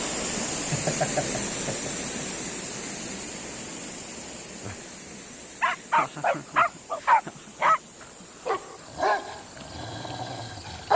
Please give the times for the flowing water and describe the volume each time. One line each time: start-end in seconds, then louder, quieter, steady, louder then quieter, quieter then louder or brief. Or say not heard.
0.0-10.9 quieter.